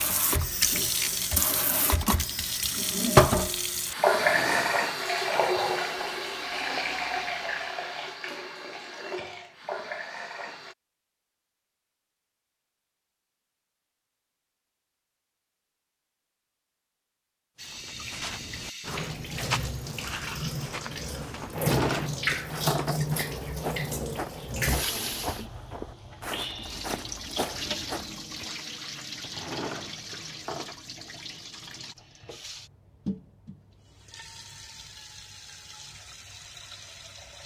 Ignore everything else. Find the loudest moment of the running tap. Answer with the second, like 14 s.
4 s.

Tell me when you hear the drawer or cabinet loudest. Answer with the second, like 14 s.
22 s.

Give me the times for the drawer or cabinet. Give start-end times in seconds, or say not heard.
4.1-5.5, 21.4-23.0, 29.2-30.8.